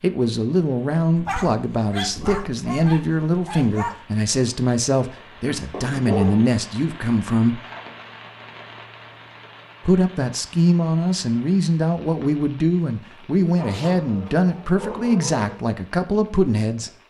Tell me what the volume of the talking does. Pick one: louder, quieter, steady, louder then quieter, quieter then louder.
steady.